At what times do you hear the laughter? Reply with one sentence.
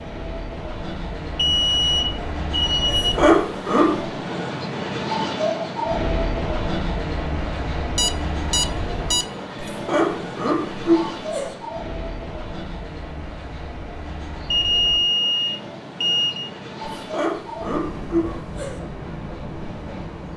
You can hear the laughter from 2.9 to 4.2 s, from 9.7 to 11.6 s and from 16.9 to 18.8 s.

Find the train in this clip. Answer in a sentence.
You can hear the train from 0.0 to 20.3 s.